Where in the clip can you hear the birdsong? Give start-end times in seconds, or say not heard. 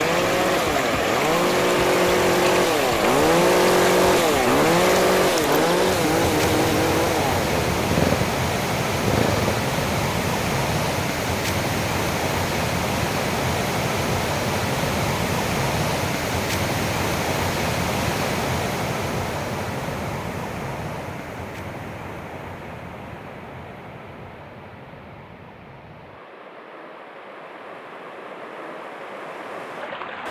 not heard.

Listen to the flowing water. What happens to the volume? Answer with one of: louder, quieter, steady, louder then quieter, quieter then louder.
quieter.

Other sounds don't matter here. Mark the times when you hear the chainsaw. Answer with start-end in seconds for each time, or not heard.
0.0-9.7.